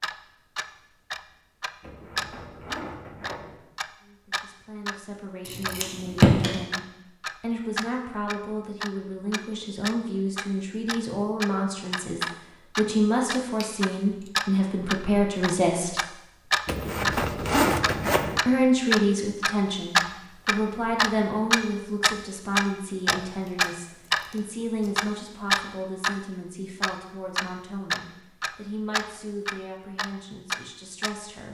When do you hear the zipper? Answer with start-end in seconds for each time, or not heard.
1.8-3.5, 16.6-18.4.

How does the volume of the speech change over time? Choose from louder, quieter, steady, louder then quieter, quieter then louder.
louder then quieter.